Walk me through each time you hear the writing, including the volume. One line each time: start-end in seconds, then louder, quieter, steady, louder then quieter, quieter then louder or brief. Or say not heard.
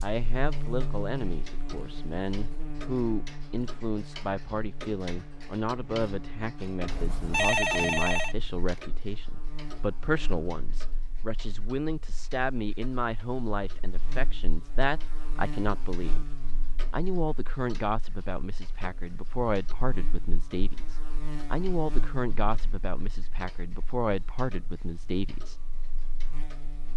not heard.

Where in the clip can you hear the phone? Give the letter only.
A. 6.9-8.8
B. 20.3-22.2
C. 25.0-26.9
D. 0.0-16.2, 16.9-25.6
A.